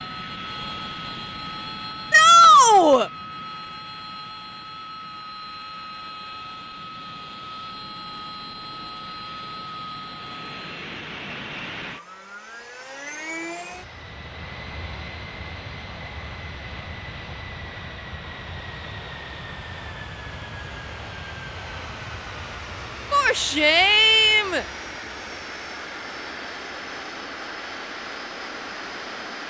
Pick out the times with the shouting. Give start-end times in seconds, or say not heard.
2.1-3.1, 23.1-24.6.